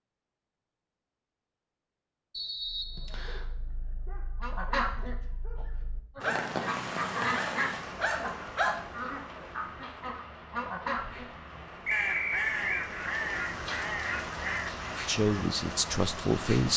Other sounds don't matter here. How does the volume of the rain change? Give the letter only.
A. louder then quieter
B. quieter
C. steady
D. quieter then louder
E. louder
D.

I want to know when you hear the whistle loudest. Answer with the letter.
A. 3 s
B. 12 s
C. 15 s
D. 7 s
B.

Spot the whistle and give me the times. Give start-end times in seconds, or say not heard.
2.3-3.5, 11.8-12.8.